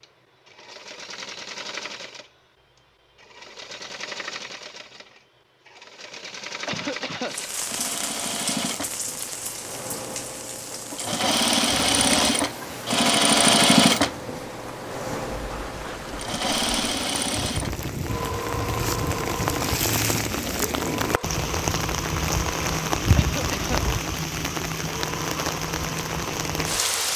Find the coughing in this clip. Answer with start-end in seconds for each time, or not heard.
6.7-7.3, 23.1-23.9.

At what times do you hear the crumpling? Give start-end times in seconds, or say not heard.
11.7-12.3.